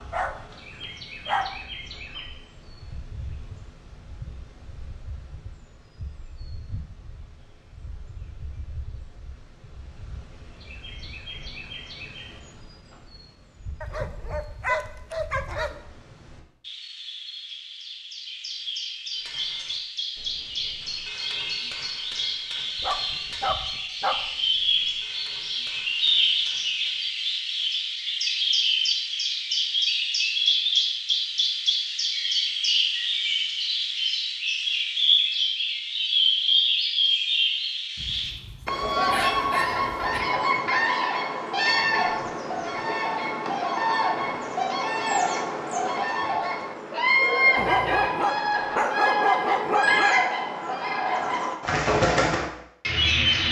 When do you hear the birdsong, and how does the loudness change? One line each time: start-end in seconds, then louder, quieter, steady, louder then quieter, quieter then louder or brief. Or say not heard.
0.0-53.4 louder.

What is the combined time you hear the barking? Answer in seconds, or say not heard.
10 s.